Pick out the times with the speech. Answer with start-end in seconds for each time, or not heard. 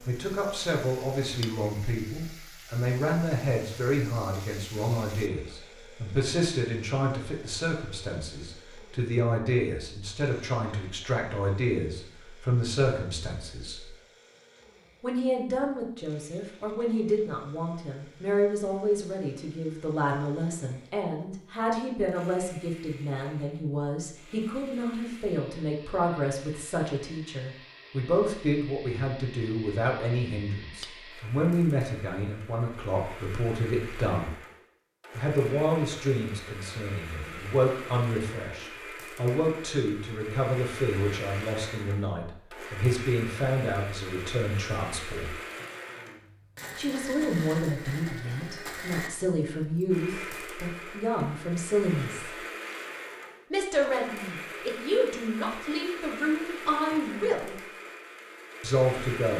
0.1-13.9, 15.0-34.4, 35.1-45.4, 46.8-52.4, 53.5-57.5, 58.6-59.3.